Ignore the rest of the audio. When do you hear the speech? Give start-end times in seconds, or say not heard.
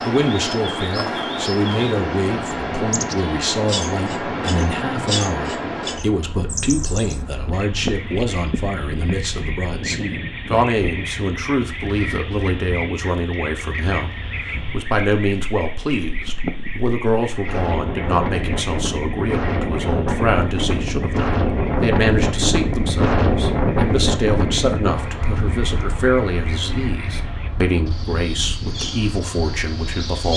0.0-30.3.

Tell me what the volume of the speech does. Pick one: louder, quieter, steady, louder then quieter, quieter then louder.
steady.